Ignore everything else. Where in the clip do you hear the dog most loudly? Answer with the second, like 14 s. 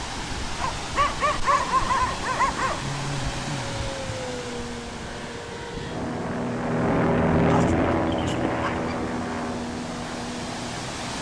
2 s.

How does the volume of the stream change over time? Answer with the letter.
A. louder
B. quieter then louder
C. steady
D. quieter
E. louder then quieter
B.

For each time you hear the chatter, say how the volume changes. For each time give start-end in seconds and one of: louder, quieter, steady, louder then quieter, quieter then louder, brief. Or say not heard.
not heard.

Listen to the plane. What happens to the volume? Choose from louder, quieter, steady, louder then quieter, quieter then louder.
louder then quieter.